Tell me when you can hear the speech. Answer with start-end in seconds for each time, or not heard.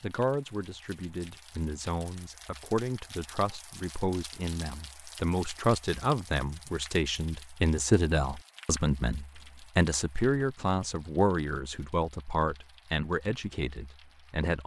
0.0-14.6.